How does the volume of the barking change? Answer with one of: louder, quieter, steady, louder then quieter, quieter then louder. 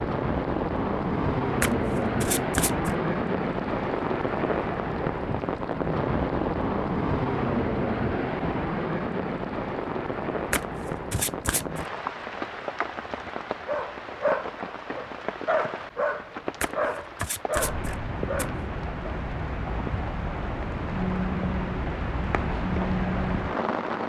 quieter then louder.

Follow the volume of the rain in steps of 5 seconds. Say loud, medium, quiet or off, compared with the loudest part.
loud, loud, medium, medium, loud.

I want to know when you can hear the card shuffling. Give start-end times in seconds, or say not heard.
1.6-3.0, 10.5-11.8, 16.6-18.5.